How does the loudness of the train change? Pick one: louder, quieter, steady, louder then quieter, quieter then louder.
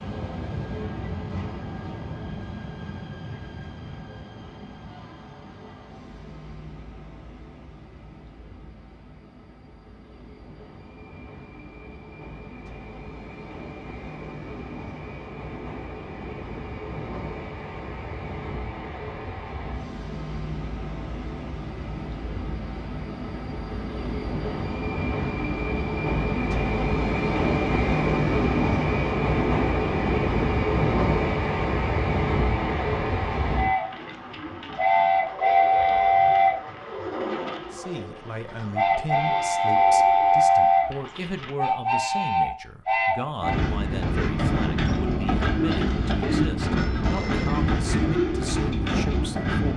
louder.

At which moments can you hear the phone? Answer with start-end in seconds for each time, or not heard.
46.8-47.7.